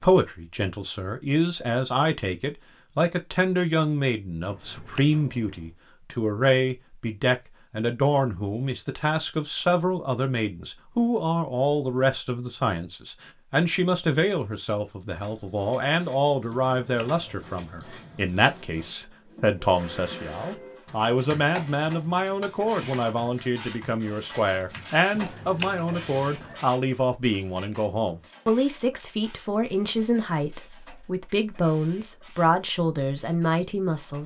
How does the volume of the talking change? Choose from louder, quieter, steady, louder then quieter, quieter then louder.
steady.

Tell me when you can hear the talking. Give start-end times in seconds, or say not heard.
0.0-34.2.